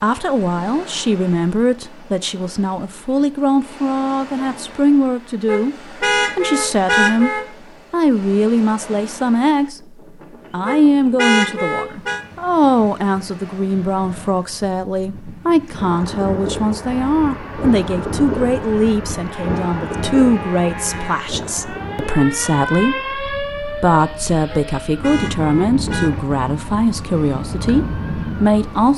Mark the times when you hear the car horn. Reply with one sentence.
The car horn can be heard from 5.5 to 7.5 s, from 10.7 to 12.2 s and from 24.5 to 26.1 s.